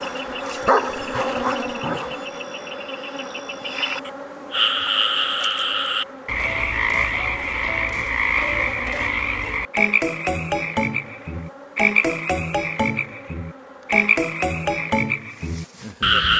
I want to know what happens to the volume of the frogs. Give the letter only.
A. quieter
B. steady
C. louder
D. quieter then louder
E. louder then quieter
C.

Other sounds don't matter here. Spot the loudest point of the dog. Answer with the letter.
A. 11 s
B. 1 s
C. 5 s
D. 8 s
B.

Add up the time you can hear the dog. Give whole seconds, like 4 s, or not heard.
2 s.